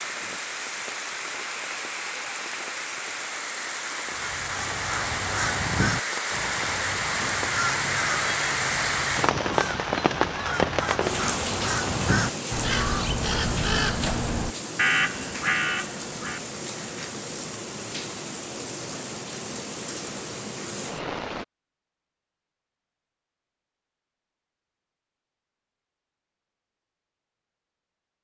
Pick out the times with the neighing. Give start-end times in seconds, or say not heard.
not heard.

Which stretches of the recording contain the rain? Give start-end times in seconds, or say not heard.
0.0-21.4.